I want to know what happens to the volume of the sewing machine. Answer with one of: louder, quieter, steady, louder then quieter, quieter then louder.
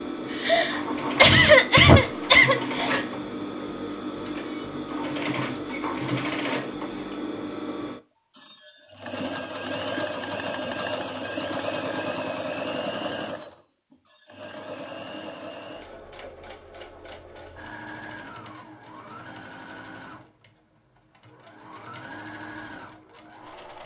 quieter.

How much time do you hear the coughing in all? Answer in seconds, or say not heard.
3 s.